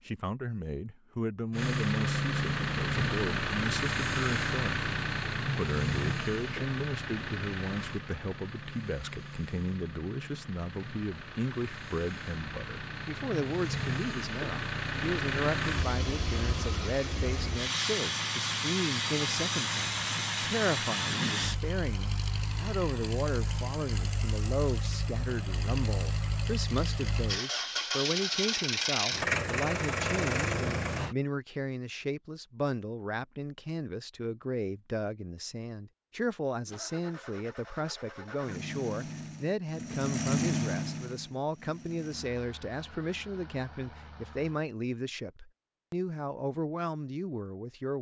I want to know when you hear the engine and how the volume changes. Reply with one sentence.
You can hear the engine from 1.5 to 31.1 s, getting quieter then louder; and from 36.6 to 44.6 s, getting louder then quieter.